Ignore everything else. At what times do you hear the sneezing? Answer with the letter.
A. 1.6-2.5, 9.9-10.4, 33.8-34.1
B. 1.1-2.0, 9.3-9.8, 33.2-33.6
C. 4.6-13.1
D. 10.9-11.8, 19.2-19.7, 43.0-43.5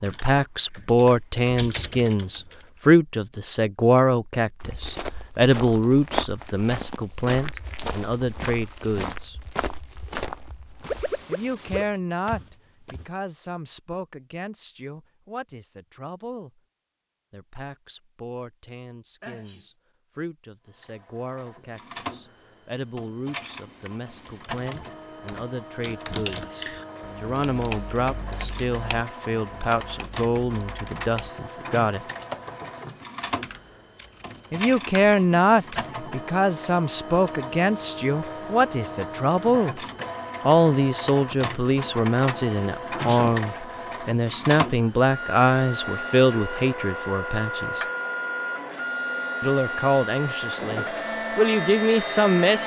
D.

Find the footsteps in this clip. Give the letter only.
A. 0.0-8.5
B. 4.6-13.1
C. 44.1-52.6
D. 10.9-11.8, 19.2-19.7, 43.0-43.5
B.